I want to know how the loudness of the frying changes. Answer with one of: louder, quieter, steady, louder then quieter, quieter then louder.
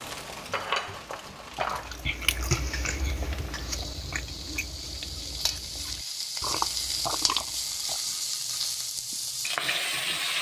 quieter then louder.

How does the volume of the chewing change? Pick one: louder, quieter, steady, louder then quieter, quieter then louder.
quieter then louder.